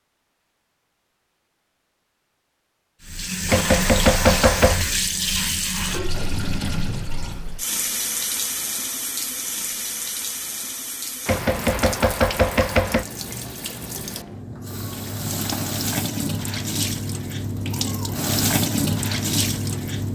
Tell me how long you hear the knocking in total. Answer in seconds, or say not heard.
3 s.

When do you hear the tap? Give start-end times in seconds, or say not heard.
3.0-20.1.